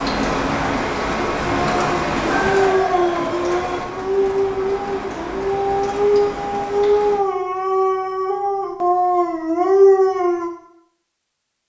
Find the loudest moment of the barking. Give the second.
10 s.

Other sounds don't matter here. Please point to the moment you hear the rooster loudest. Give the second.
3 s.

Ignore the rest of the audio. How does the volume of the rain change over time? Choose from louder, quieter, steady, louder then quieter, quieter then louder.
quieter.